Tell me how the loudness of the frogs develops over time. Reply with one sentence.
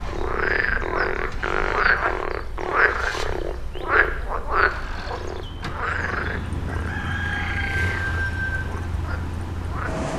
The volume of the frogs goes down.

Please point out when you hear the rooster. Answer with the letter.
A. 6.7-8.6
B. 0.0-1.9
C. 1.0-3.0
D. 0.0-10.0
A.